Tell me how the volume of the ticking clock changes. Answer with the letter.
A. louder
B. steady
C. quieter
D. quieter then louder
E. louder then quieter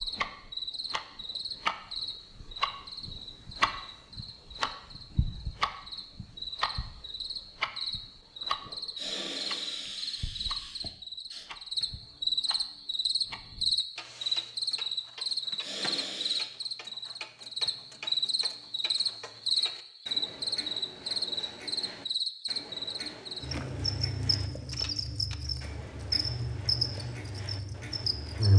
C.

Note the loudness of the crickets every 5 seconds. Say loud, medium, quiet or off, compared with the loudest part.
medium, medium, loud, loud, loud, loud.